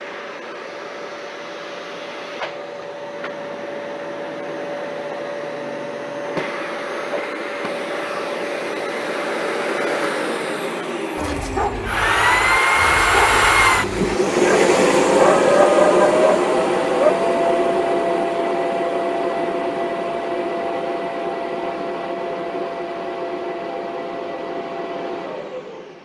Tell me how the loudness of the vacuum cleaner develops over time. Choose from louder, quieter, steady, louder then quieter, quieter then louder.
louder then quieter.